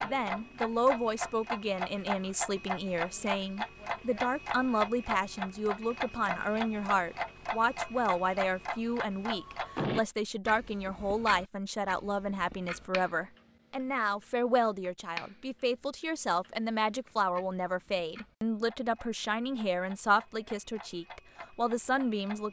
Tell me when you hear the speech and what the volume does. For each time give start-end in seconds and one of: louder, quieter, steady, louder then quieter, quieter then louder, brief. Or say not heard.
0.0-22.4 steady.